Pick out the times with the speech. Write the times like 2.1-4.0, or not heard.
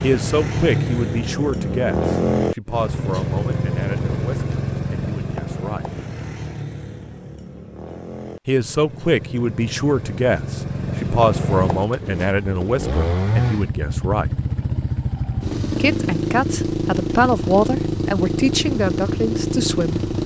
0.0-5.8, 8.4-14.3, 15.8-20.0.